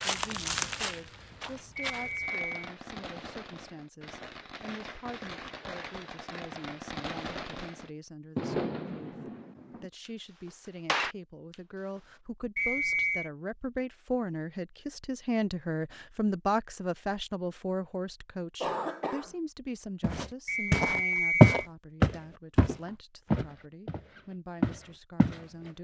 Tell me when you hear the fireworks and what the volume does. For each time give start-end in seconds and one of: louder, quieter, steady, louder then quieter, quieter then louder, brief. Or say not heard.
2.2-11.6 louder.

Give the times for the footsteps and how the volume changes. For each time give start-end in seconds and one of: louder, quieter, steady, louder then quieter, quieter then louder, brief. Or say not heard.
0.0-2.2 brief
20.0-25.4 louder then quieter.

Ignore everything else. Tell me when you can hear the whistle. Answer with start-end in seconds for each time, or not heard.
1.8-2.5, 12.6-13.3, 20.4-21.6.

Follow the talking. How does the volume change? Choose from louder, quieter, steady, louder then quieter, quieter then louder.
louder then quieter.